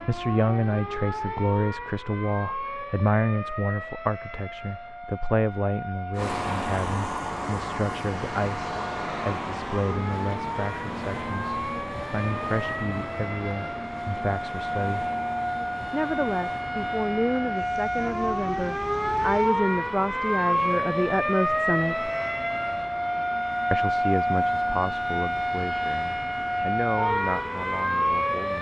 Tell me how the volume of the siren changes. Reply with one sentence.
The volume of the siren goes up.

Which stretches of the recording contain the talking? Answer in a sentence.
The talking can be heard from 0.1 to 15.1 s, from 15.9 to 22.1 s and from 23.7 to 28.5 s.